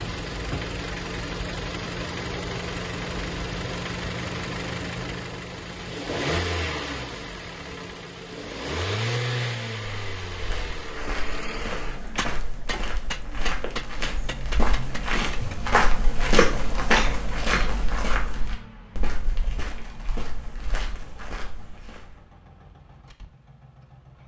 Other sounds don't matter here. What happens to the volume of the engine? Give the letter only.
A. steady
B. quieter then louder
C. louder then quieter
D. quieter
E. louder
D.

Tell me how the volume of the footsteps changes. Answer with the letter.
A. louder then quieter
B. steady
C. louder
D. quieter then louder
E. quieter
A.